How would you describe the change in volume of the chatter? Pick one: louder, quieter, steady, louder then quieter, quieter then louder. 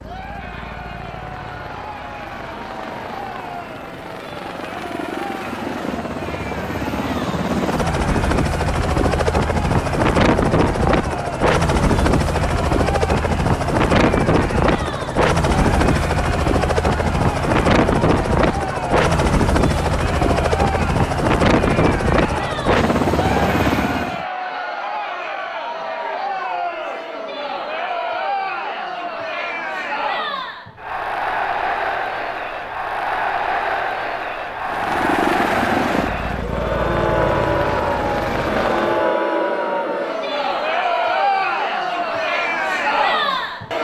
louder.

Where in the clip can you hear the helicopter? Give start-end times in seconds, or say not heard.
0.0-24.2, 34.6-39.1.